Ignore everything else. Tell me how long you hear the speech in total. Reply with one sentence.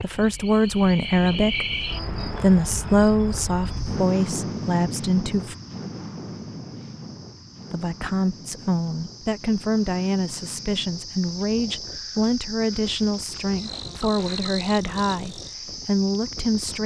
You can hear the speech for 15 seconds altogether.